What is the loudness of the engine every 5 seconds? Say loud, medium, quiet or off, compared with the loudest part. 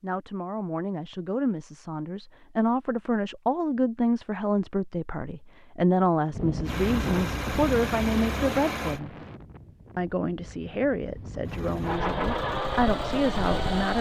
off, loud, loud.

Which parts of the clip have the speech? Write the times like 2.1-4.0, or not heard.
0.0-9.2, 9.9-13.9.